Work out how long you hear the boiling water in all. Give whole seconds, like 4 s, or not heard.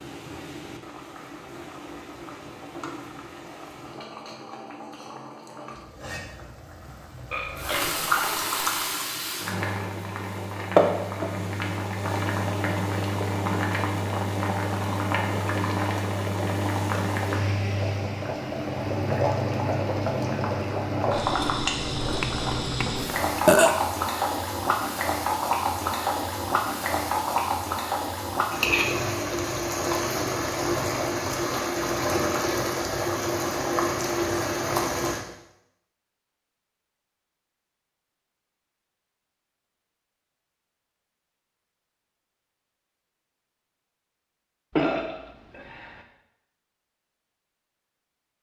35 s.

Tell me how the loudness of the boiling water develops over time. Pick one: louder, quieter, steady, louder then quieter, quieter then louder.
louder.